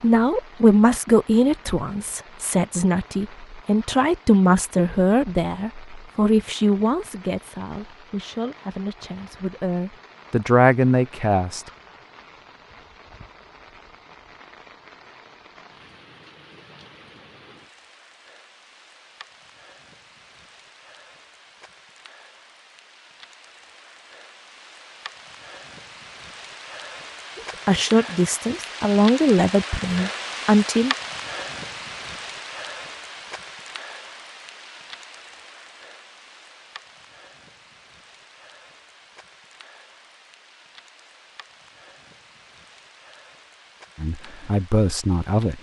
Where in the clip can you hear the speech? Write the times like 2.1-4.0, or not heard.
0.0-11.7, 27.4-30.9, 44.0-45.5.